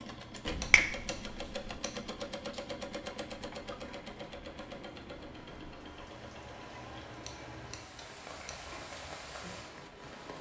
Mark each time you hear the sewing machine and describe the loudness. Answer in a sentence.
You can hear the sewing machine from 0.0 to 10.3 s, getting quieter.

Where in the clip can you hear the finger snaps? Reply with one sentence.
You can hear the finger snaps from 0.5 to 1.8 s.